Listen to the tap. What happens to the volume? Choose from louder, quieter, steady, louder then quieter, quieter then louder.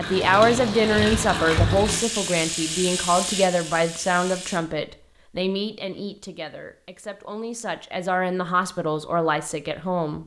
quieter.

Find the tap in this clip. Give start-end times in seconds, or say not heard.
0.0-4.6.